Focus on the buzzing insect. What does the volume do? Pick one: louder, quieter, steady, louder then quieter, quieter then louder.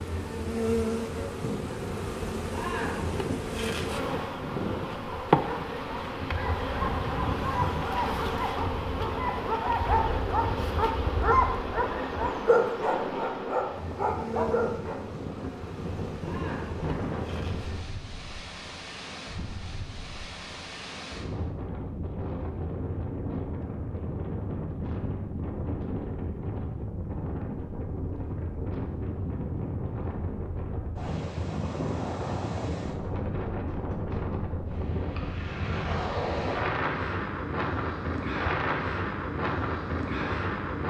quieter.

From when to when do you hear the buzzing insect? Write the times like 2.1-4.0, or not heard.
0.0-17.9.